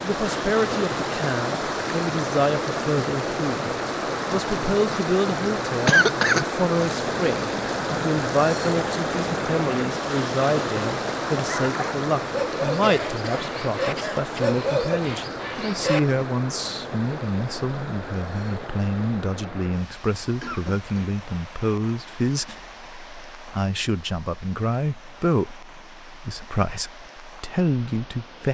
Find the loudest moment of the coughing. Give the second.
6 s.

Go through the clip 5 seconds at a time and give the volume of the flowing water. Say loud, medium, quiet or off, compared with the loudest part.
loud, loud, loud, medium, quiet, quiet.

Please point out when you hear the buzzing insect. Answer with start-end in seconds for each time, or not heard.
not heard.